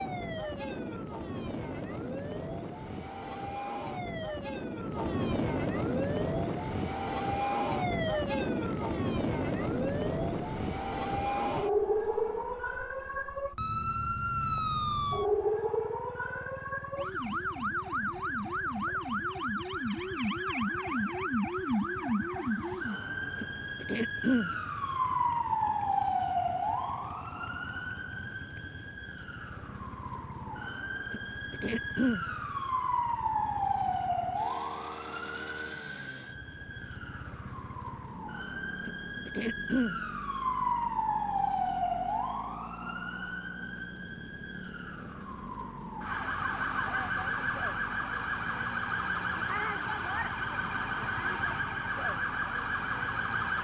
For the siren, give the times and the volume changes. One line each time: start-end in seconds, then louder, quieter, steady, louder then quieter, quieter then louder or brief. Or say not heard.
0.0-53.5 steady.